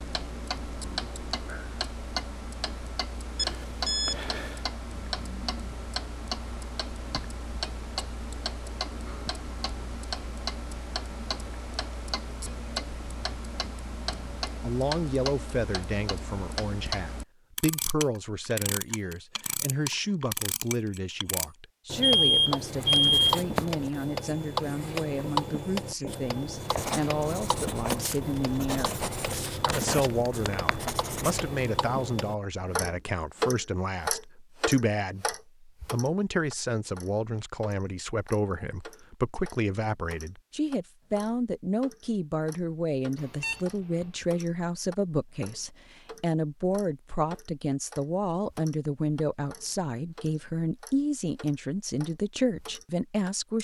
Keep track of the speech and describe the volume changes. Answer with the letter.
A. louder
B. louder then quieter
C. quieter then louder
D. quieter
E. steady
E.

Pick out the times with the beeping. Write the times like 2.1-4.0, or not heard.
3.4-4.5, 22.0-23.4, 43.1-44.0.